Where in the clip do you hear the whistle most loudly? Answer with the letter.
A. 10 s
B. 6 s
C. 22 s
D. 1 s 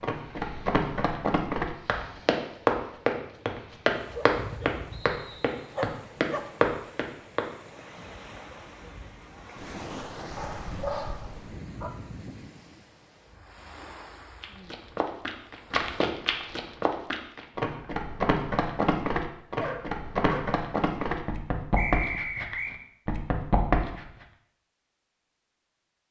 C.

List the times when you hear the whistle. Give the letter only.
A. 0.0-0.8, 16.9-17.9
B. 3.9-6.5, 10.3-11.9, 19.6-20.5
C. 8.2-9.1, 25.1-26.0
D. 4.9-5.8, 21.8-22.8
D.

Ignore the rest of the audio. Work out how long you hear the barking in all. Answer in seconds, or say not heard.
5 s.